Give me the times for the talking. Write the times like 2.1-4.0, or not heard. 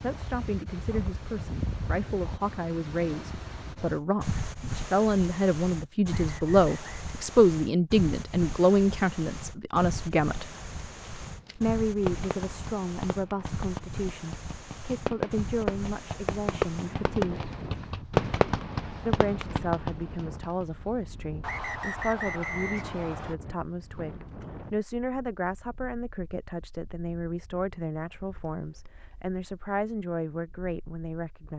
0.0-10.6, 11.6-17.4, 19.1-31.5.